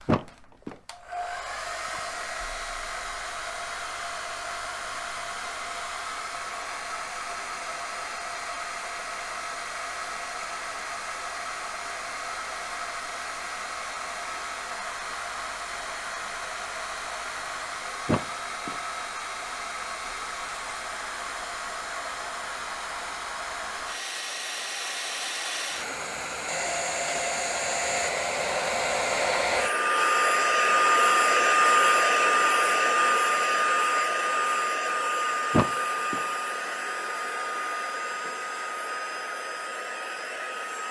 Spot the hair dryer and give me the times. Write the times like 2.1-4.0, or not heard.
0.0-40.8.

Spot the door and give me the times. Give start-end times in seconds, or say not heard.
0.1-0.8, 18.1-18.8, 35.5-36.2.